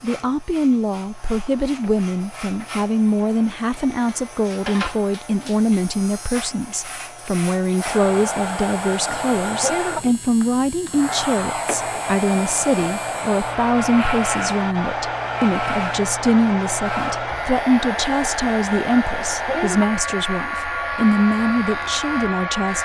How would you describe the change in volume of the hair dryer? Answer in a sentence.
The loudness of the hair dryer goes up.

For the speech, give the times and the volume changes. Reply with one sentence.
You can hear the speech from 0.0 to 22.8 s, at a steady volume.